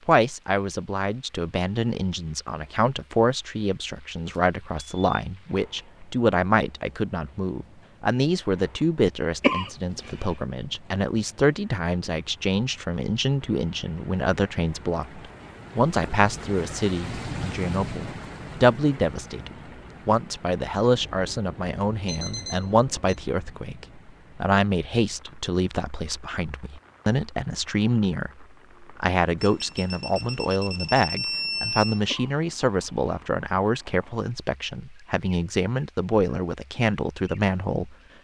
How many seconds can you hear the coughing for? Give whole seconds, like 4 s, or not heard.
2 s.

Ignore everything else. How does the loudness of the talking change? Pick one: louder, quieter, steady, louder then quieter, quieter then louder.
steady.